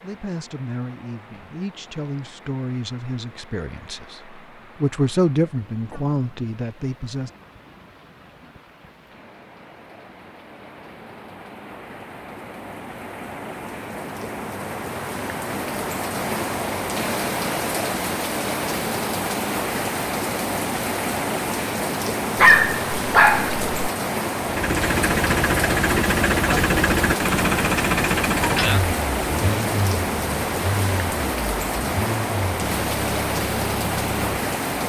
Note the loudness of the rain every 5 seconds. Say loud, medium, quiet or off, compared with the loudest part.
quiet, quiet, medium, loud, loud, loud, loud.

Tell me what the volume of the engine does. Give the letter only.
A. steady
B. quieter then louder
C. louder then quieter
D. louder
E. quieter
E.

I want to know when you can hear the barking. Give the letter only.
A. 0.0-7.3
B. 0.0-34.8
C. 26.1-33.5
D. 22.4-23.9
D.